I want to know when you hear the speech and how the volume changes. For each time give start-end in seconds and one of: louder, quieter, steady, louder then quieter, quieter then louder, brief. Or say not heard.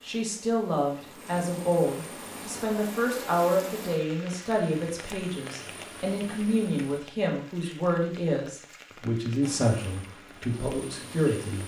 0.0-11.6 steady.